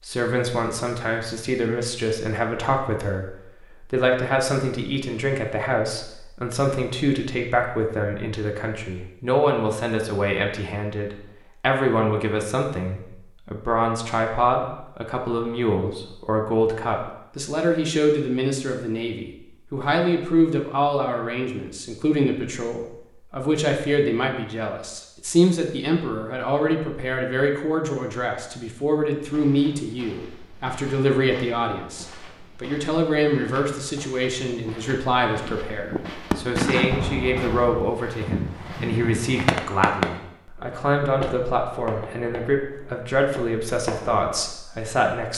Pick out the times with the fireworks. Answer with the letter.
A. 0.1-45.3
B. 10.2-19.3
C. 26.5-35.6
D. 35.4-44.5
D.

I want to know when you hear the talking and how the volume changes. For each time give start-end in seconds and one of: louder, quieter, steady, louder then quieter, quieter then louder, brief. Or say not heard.
0.1-45.3 steady.